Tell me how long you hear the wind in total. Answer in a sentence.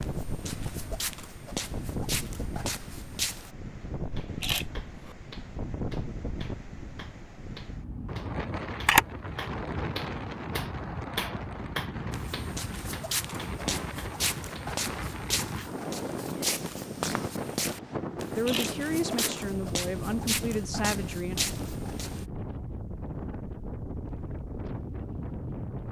The wind can be heard for 26 seconds in total.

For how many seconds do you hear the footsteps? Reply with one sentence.
You can hear the footsteps for 14 seconds altogether.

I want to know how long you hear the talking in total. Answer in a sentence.
You can hear the talking for 3 seconds altogether.